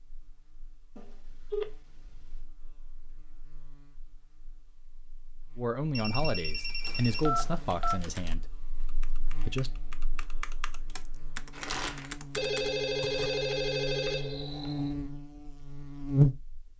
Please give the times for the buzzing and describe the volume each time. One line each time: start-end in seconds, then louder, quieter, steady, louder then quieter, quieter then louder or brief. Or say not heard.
0.0-16.7 louder.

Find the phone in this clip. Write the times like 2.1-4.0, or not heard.
0.9-2.4, 6.0-8.0, 12.3-14.9.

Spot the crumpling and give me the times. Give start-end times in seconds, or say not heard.
11.5-12.2.